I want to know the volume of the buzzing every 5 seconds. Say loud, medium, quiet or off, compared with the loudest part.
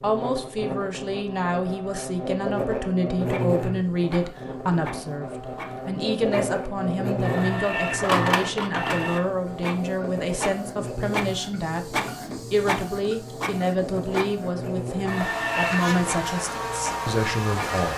loud, loud, medium, loud.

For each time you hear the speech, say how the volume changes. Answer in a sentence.
You can hear the speech from 0.0 to 17.9 s, at a steady volume.